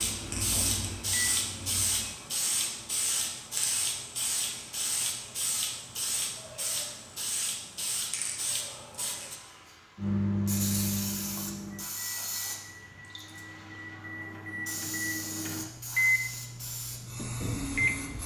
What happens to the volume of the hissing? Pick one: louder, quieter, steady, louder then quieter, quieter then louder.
quieter.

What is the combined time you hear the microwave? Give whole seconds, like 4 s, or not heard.
10 s.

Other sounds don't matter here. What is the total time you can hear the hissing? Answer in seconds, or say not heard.
18 s.